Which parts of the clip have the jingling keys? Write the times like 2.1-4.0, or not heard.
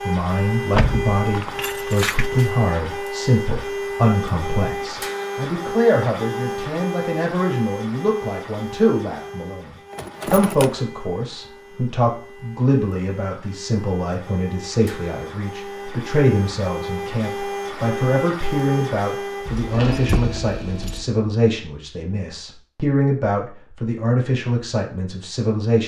0.7-2.5, 9.9-10.8, 19.4-21.1.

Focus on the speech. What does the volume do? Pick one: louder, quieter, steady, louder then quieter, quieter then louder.
steady.